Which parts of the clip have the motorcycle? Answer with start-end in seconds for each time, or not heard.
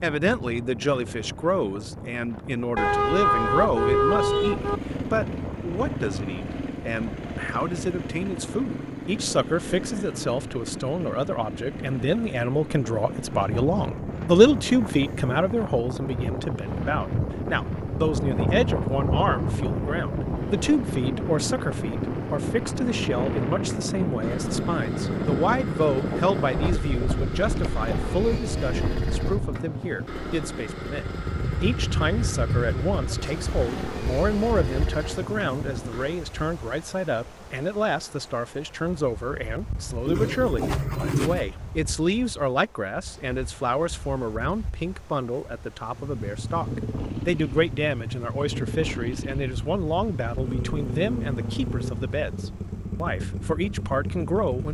4.3-36.2, 45.9-54.7.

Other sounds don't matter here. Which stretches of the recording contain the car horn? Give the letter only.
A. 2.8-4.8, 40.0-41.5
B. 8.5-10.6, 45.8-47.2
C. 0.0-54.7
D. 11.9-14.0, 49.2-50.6
A.